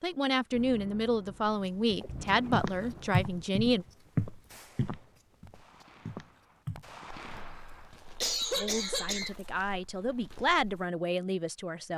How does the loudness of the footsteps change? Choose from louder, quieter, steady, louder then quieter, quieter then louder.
quieter.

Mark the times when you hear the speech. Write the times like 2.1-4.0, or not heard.
0.0-3.9, 8.4-11.9.